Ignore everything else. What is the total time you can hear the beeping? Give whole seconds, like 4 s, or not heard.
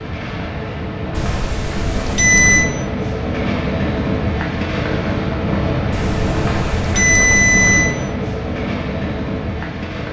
4 s.